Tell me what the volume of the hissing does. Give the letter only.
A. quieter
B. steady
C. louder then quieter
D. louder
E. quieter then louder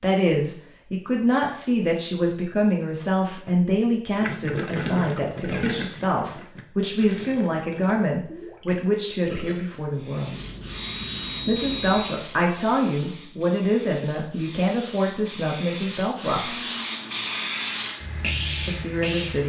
E.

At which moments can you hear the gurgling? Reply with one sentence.
You can hear the gurgling from 4.2 to 9.8 s.